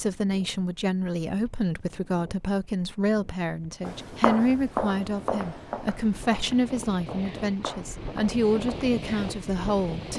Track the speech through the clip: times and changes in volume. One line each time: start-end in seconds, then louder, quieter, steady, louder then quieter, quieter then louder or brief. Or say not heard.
0.0-10.1 steady.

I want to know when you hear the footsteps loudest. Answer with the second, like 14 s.
4 s.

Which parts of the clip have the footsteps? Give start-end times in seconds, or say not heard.
3.9-8.9.